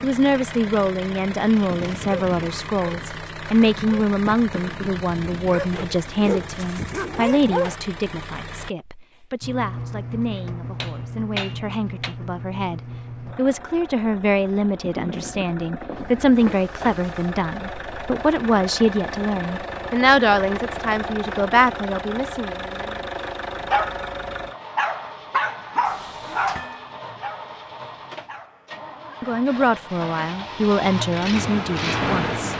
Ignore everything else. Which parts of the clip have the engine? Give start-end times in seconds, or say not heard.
0.0-32.5.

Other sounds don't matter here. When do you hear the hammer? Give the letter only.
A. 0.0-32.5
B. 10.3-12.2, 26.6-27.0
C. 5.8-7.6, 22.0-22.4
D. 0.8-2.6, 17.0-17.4
B.